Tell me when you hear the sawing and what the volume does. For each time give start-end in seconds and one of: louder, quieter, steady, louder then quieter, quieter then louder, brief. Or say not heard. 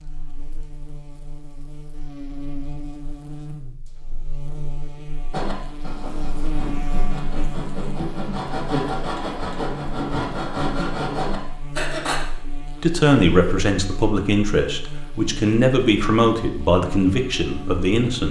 5.3-12.2 louder.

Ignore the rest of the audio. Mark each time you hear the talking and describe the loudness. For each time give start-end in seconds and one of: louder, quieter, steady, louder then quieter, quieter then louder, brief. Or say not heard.
12.8-18.2 steady.